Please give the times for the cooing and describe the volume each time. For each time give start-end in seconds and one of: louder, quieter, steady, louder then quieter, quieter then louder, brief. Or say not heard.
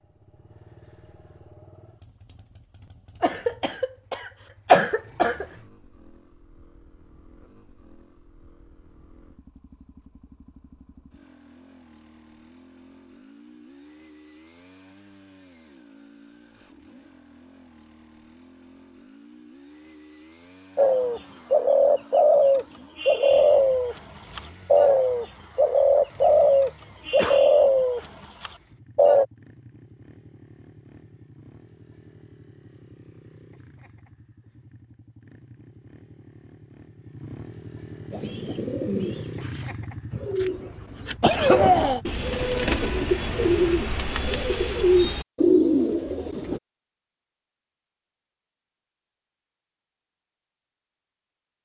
20.8-29.2 steady
38.1-46.6 louder.